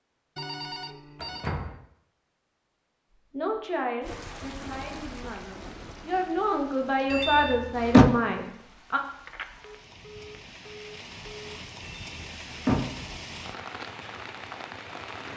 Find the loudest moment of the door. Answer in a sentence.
The loudest moment of the door is at 8 seconds.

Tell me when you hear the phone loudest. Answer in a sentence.
The loudest moment of the phone is at 1 second.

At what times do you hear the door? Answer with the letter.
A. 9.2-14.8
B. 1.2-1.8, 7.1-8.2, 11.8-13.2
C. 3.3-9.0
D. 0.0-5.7
B.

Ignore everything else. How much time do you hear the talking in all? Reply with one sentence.
The talking can be heard for 6 seconds in total.